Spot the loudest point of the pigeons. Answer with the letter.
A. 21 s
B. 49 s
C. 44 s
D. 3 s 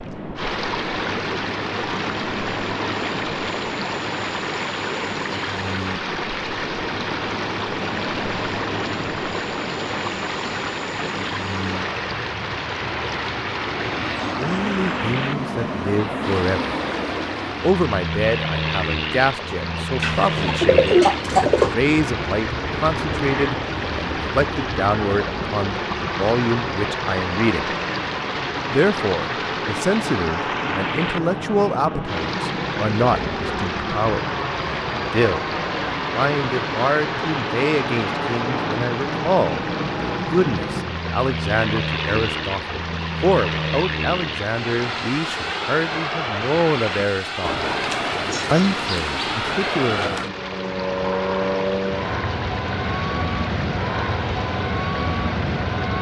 A.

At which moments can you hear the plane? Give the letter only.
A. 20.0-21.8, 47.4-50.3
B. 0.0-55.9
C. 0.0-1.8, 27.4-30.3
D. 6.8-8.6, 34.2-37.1
B.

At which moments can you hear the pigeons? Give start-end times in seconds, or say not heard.
20.0-21.8, 47.4-50.3.